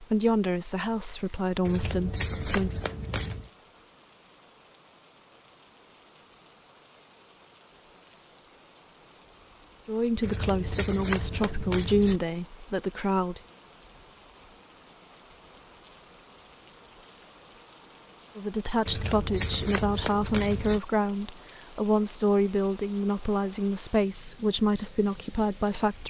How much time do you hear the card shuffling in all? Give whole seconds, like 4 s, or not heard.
6 s.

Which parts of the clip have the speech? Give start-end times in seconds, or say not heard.
0.0-2.8, 9.8-13.4, 18.4-26.0.